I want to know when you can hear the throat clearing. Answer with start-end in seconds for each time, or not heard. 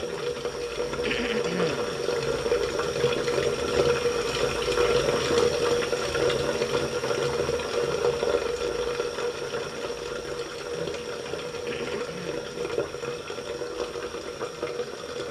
1.1-2.0, 11.7-12.5.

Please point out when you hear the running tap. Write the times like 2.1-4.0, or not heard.
0.0-15.2.